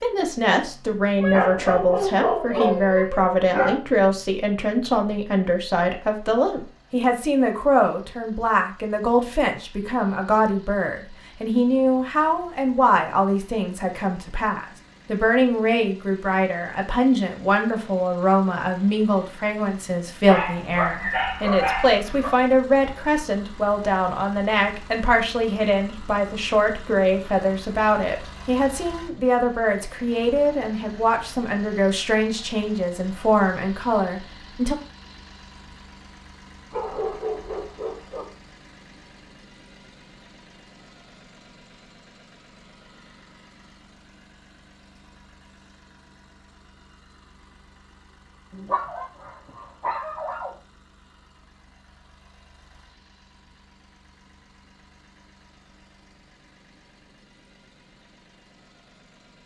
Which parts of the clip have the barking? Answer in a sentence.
You can hear the barking from 1.2 to 3.8 s, from 20.2 to 22.3 s, from 36.7 to 38.2 s and from 48.5 to 50.5 s.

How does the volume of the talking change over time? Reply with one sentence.
The loudness of the talking stays about the same.